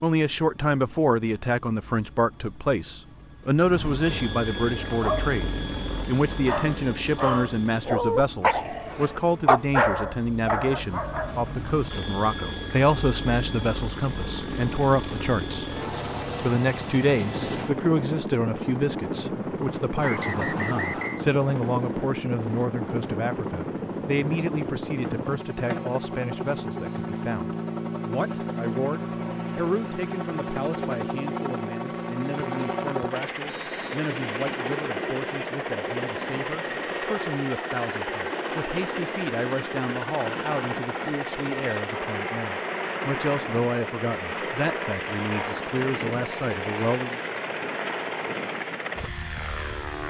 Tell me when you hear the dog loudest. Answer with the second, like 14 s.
10 s.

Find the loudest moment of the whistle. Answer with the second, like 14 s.
20 s.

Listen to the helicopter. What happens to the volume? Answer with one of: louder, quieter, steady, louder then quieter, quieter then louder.
louder.